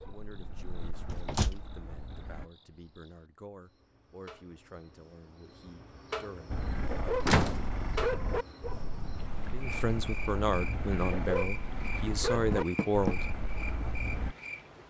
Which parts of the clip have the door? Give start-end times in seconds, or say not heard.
1.1-1.6, 7.2-8.3, 12.5-13.2.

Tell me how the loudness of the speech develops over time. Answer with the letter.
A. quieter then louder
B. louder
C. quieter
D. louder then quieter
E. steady
B.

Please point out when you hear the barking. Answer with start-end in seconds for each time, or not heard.
0.0-2.5, 6.5-14.3.